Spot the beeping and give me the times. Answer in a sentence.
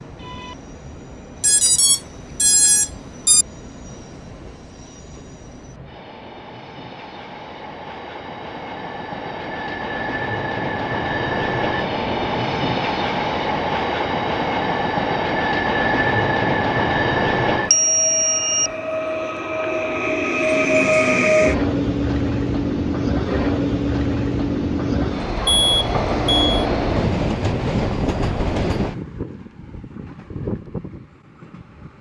You can hear the beeping from 1.4 to 3.5 s, from 17.7 to 18.7 s and from 25.4 to 26.6 s.